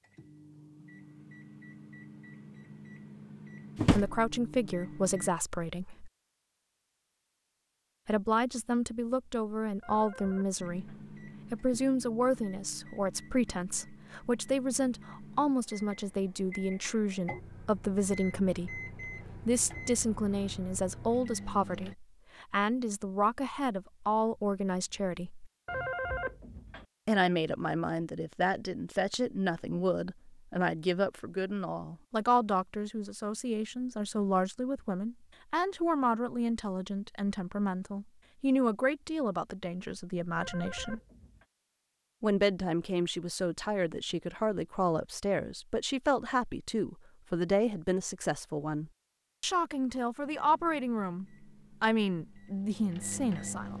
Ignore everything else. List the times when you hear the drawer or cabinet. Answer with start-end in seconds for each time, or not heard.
3.8-4.3.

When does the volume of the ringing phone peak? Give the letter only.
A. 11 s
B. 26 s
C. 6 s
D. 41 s
B.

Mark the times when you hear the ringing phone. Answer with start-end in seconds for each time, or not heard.
9.8-11.0, 25.6-26.9, 40.4-41.5.